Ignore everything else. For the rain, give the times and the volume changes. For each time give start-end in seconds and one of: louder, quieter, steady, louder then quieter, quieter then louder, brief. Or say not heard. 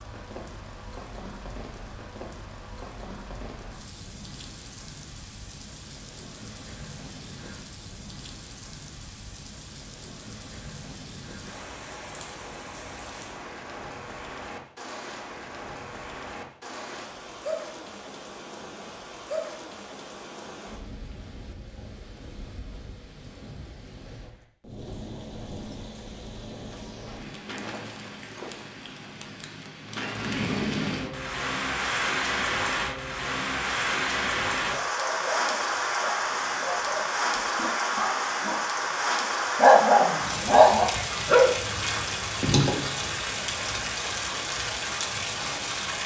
0.0-46.0 louder.